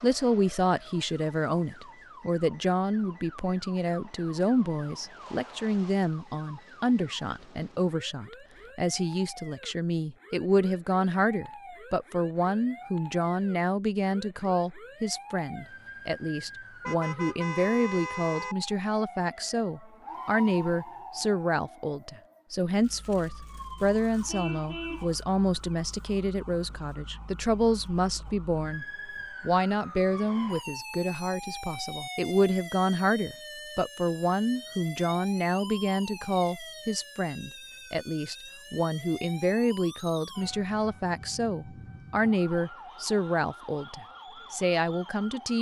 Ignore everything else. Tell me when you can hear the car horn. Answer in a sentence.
The car horn can be heard from 16.8 to 18.6 s and from 24.2 to 25.1 s.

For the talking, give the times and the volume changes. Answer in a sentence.
You can hear the talking from 0.0 to 45.5 s, at a steady volume.